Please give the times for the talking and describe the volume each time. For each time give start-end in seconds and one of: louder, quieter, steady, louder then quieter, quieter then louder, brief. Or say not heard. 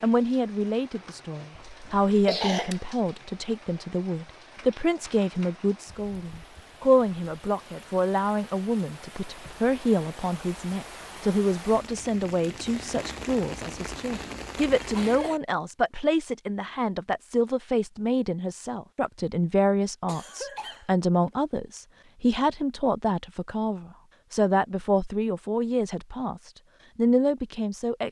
0.0-28.0 steady.